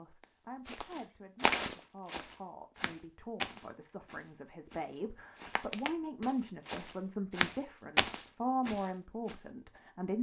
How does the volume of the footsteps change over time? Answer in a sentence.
The volume of the footsteps goes down, then up.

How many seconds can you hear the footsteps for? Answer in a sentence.
The footsteps can be heard for 9 seconds in total.